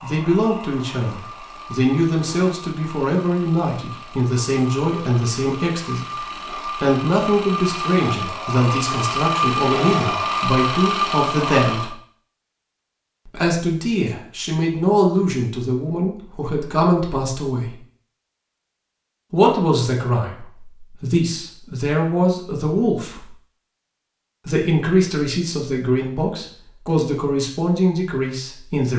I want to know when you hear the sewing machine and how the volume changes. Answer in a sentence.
You can hear the sewing machine from 0.0 to 11.9 s, getting louder.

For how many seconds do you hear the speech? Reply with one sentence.
You can hear the speech for 25 seconds altogether.